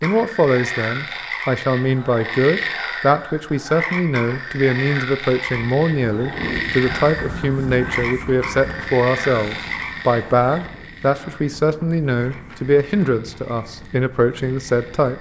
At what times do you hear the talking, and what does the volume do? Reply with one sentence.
You can hear the talking from 0.0 to 15.1 s, at a steady volume.